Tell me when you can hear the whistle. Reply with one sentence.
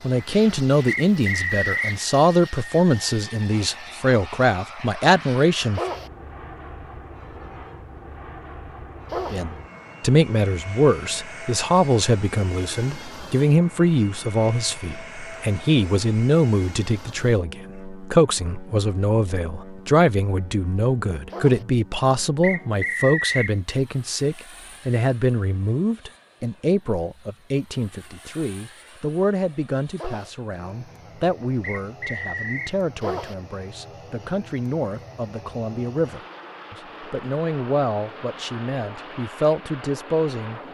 The whistle can be heard from 0.8 to 2.0 s, from 22.4 to 23.6 s and from 31.6 to 32.8 s.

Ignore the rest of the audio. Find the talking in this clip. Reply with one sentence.
The talking can be heard from 0.0 to 5.8 s and from 9.3 to 40.6 s.